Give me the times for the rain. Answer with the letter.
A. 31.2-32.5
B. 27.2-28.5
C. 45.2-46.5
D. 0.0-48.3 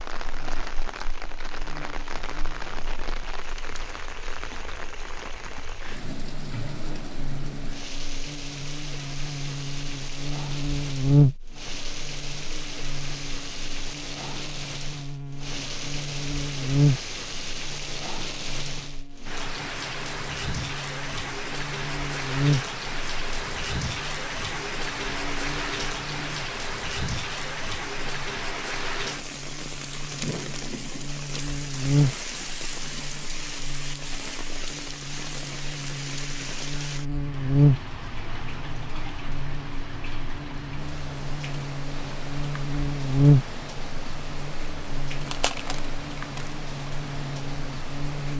D.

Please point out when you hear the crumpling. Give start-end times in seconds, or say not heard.
45.2-46.5.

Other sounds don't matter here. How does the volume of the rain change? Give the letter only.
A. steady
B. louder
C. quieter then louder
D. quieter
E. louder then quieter
E.